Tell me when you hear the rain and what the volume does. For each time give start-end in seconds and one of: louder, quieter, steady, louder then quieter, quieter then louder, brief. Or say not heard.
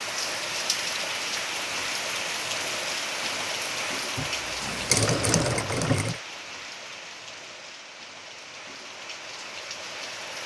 0.0-10.4 quieter.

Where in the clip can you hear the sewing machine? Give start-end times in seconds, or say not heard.
4.2-6.2.